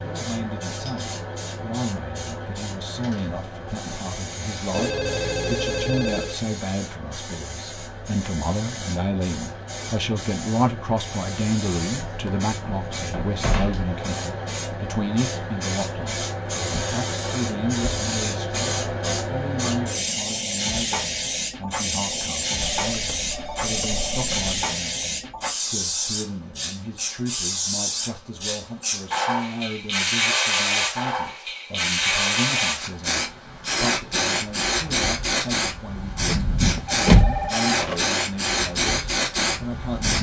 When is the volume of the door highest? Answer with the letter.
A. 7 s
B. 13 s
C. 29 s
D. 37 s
D.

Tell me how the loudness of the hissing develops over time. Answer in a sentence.
The volume of the hissing goes up.